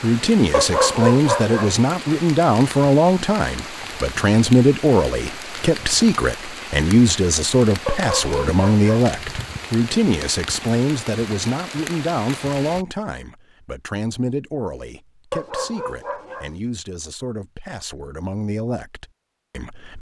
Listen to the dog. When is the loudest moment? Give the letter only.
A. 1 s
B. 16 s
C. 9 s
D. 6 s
A.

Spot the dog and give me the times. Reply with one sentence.
You can hear the dog from 0.5 to 1.8 s, from 7.8 to 9.1 s and from 15.3 to 16.6 s.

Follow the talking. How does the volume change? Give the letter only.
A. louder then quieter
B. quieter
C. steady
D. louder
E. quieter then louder
B.